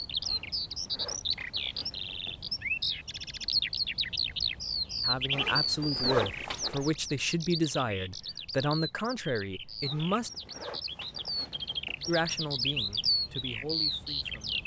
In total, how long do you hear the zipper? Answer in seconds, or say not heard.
6 s.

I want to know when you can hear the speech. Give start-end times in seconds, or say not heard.
5.0-10.3, 12.1-14.6.